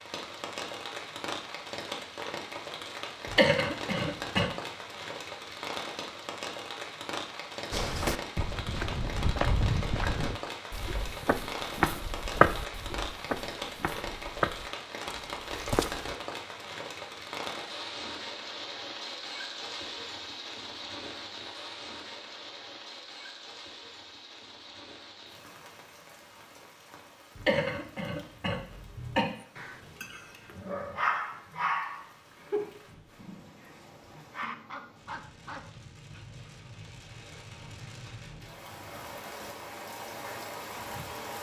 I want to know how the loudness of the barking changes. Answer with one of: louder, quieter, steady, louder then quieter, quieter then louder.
quieter.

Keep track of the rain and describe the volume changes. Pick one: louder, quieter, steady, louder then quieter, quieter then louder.
quieter then louder.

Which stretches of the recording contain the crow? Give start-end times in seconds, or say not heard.
not heard.